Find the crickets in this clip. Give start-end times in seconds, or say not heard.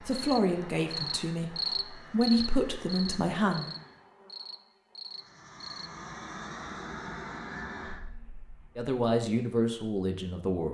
0.1-5.9.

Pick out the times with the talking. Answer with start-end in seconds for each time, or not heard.
0.0-3.7, 8.8-10.7.